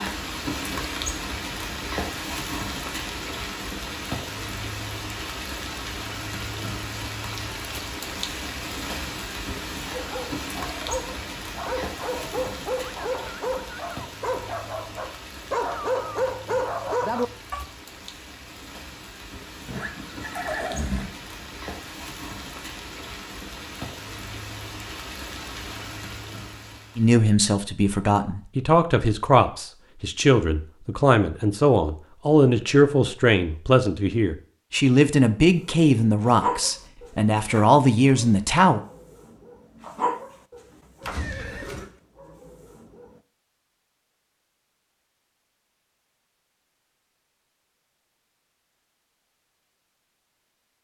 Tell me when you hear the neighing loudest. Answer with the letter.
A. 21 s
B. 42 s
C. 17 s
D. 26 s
A.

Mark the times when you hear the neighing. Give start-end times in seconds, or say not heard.
19.6-21.1, 41.0-41.9.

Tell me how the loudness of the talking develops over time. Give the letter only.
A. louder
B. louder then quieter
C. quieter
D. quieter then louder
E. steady
E.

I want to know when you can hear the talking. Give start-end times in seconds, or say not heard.
26.9-38.8.